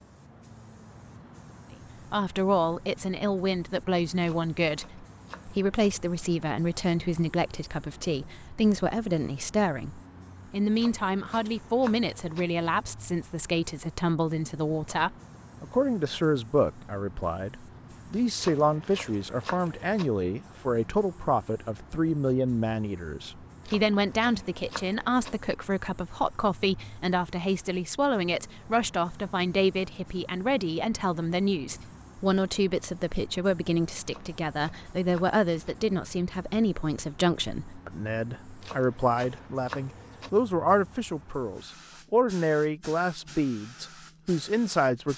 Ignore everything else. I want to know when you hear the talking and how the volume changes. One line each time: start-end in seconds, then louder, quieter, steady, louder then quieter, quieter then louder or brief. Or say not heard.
2.1-45.1 steady.